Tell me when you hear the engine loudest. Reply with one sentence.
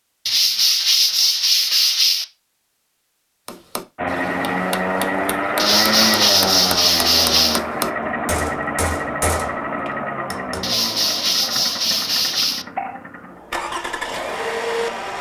The loudest moment of the engine is at 6 seconds.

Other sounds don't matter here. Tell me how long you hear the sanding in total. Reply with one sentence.
You can hear the sanding for 6 seconds altogether.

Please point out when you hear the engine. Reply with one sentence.
You can hear the engine from 4.0 to 15.1 s.